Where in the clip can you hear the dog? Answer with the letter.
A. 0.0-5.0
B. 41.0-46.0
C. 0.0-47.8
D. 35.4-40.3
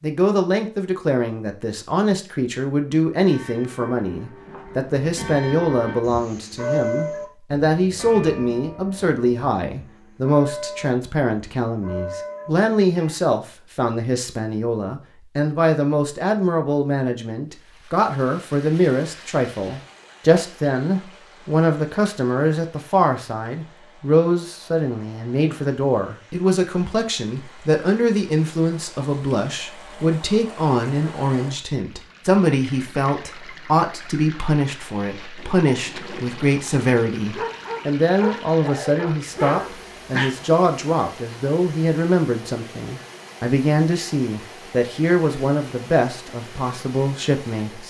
D.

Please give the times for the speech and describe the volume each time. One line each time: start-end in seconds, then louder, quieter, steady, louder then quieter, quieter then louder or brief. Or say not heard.
0.0-47.8 steady.